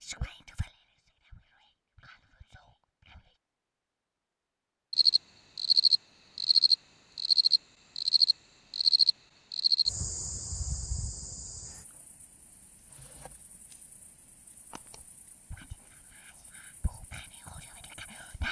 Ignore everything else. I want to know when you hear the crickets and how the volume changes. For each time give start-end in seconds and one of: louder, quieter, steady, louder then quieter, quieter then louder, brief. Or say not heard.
4.9-18.4 quieter.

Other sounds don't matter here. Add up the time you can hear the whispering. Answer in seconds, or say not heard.
6 s.